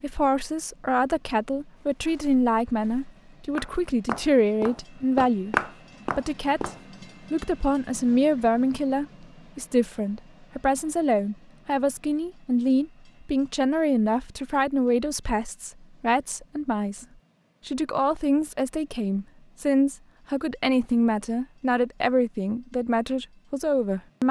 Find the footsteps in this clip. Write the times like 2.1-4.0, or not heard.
1.8-6.8.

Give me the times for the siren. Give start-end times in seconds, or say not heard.
not heard.